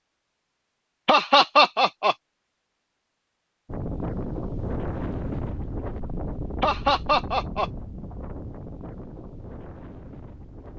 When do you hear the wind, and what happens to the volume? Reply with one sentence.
The wind can be heard from 3.6 to 10.7 s, getting quieter.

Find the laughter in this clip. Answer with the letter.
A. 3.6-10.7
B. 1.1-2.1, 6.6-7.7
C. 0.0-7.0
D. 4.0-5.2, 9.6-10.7
B.